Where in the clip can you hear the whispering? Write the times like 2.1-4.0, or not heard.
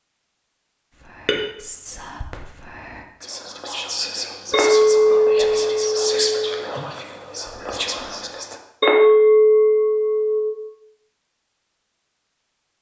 0.9-8.6.